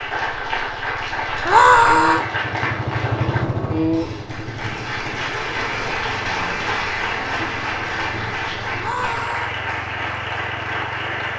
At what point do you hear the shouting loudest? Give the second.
2 s.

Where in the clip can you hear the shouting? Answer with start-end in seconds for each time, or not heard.
1.4-2.2, 8.8-9.6.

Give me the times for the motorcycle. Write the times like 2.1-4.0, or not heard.
0.0-11.3.